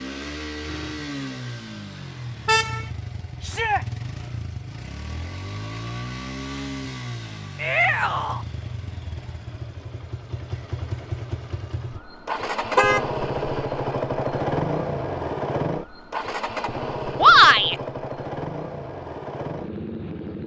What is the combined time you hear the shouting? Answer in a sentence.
The shouting can be heard for 2 seconds in total.